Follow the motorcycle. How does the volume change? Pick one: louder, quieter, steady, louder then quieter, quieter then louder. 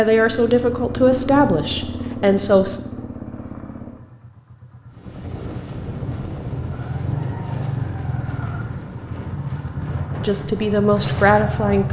quieter then louder.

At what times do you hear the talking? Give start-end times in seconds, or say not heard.
0.0-2.8, 10.2-11.8.